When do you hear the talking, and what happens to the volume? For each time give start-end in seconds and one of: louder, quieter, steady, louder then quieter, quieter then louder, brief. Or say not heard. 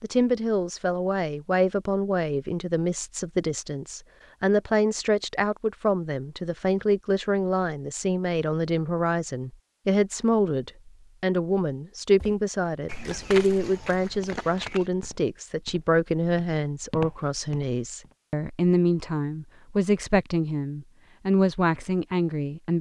0.0-22.7 steady.